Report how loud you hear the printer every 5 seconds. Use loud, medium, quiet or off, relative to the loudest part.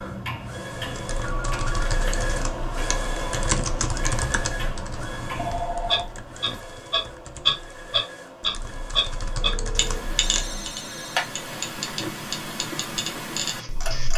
loud, medium, medium.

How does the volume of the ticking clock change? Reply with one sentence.
The volume of the ticking clock goes up, then down.